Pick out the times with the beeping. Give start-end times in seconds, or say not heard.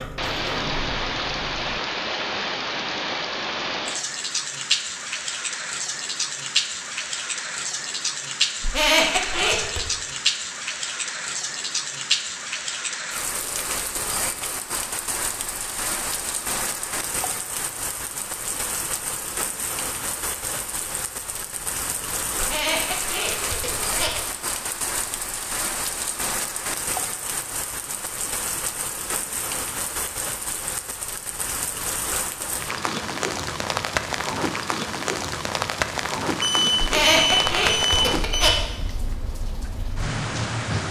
36.4-38.5.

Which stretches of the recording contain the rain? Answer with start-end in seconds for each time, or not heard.
0.0-40.8.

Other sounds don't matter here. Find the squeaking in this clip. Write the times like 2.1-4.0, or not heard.
8.6-9.8, 22.4-24.2, 36.8-38.6.